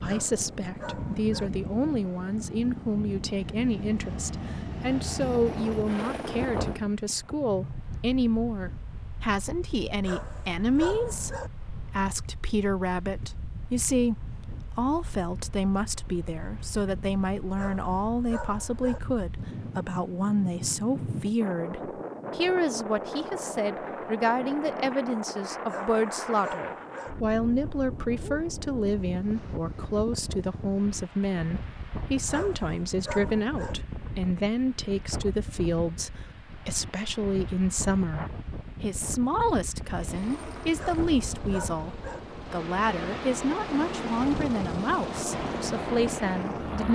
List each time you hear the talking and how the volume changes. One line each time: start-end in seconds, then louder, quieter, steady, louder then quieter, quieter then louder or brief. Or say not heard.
0.0-46.8 steady.